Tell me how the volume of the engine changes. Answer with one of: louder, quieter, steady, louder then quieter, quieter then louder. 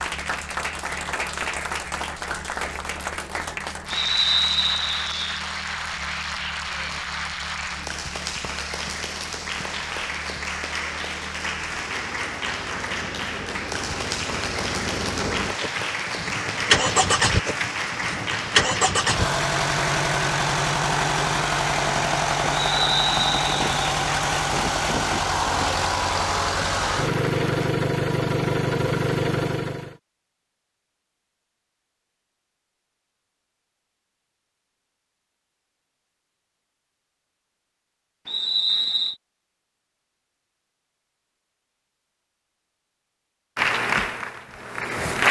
louder.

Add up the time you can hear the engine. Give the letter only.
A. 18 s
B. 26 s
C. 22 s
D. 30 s
D.